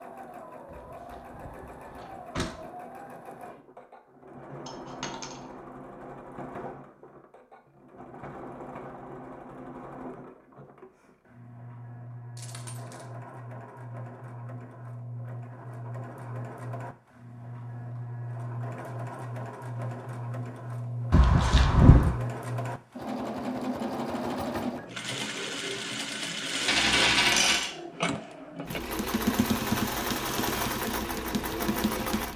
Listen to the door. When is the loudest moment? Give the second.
22 s.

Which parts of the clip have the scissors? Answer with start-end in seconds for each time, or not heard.
not heard.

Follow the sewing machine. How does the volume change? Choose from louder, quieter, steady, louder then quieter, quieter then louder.
louder.